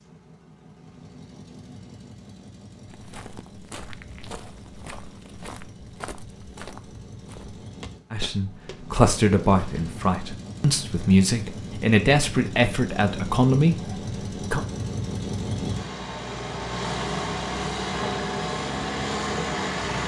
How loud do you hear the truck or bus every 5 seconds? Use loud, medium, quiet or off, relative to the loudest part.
quiet, quiet, medium, loud.